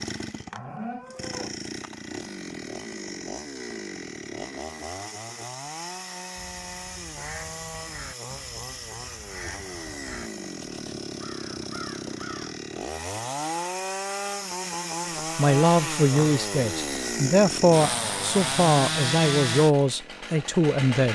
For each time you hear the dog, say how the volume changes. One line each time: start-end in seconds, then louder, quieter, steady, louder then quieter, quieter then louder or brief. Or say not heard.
not heard.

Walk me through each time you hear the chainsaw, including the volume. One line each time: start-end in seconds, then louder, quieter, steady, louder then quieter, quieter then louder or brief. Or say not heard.
0.0-21.1 louder.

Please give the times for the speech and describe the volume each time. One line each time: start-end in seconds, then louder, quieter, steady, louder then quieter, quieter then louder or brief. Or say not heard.
15.3-21.1 steady.